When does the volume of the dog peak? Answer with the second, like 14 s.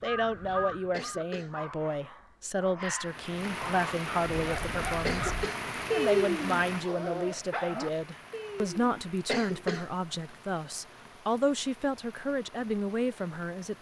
6 s.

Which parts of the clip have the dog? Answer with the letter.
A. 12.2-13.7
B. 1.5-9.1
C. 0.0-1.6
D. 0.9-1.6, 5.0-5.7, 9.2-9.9
B.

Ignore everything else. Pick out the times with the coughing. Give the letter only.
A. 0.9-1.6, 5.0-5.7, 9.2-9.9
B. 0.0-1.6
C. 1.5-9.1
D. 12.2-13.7
A.